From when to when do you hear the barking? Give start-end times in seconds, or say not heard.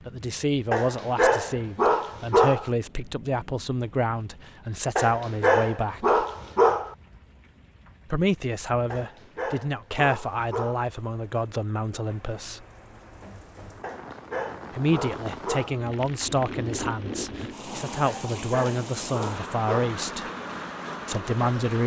0.7-2.7, 5.0-7.0, 8.9-10.9, 13.8-15.8, 18.1-20.0.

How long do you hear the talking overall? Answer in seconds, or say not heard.
17 s.